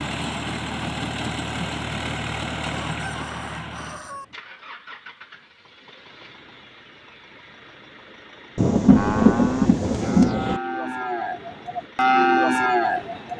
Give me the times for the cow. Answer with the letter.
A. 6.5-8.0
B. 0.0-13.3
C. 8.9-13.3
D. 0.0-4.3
C.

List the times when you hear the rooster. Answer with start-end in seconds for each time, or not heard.
2.9-4.2.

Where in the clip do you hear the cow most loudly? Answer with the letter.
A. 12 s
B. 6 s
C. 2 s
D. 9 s
A.